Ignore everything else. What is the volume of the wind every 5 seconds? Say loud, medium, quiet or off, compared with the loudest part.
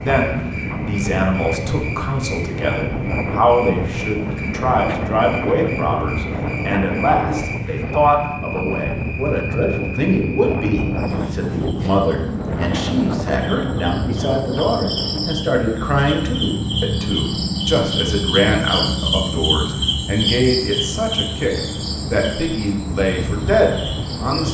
loud, loud, loud, medium, medium.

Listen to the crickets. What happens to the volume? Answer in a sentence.
The volume of the crickets goes up.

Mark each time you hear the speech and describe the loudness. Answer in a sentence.
You can hear the speech from 0.0 to 24.4 s, at a steady volume.